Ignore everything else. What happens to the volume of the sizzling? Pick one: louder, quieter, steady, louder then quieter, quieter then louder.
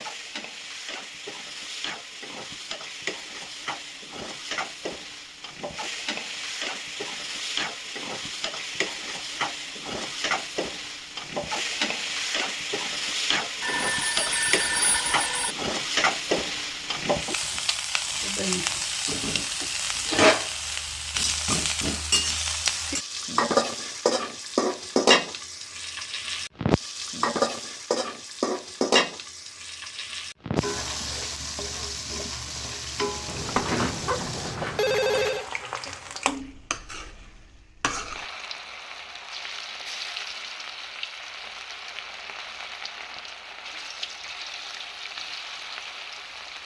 louder then quieter.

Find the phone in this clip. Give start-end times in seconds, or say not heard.
13.6-15.6, 33.2-35.5.